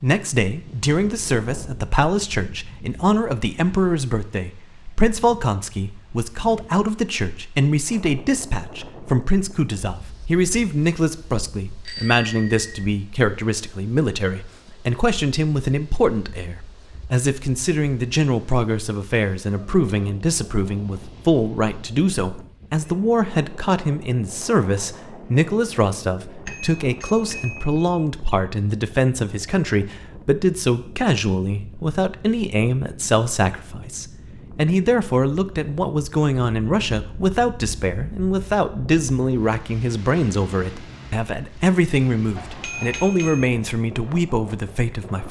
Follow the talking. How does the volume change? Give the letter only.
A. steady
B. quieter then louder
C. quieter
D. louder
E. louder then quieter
A.